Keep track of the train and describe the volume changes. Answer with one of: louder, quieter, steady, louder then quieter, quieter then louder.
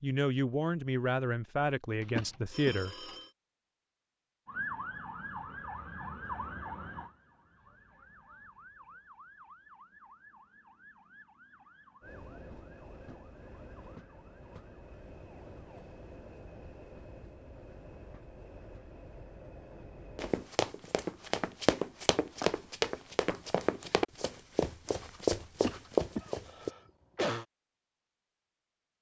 steady.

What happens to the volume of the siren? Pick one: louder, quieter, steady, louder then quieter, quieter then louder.
quieter.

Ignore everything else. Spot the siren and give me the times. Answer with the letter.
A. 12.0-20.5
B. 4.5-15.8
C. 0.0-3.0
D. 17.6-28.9
B.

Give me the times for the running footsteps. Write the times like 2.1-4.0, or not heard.
20.1-26.7.